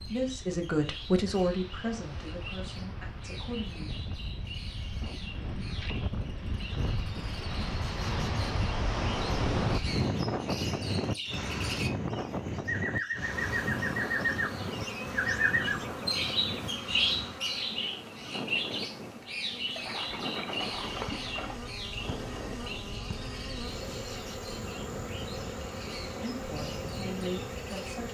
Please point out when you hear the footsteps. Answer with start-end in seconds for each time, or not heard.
not heard.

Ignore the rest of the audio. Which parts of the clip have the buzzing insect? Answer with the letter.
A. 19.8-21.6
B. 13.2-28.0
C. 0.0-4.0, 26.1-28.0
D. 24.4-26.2
B.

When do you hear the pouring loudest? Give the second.
21 s.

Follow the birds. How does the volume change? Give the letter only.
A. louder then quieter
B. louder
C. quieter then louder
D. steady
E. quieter
A.